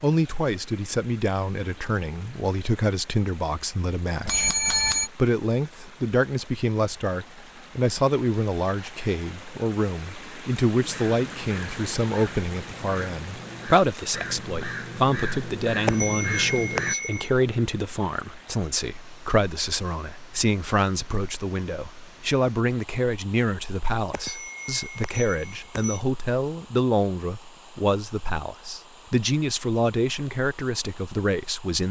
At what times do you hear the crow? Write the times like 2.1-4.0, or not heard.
10.8-16.9.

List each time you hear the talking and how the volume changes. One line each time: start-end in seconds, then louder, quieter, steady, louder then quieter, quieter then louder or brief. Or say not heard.
0.0-31.8 steady.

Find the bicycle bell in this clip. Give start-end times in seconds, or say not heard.
4.2-5.1, 15.8-17.3, 24.1-26.0.